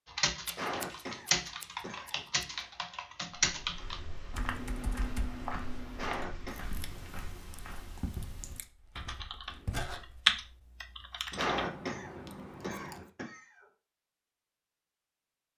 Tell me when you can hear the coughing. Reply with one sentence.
You can hear the coughing from 0.6 to 2.2 s, from 6.0 to 6.7 s and from 11.3 to 13.4 s.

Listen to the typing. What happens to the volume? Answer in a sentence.
The volume of the typing goes down, then up.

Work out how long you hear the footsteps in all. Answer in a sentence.
The footsteps can be heard for 7 seconds in total.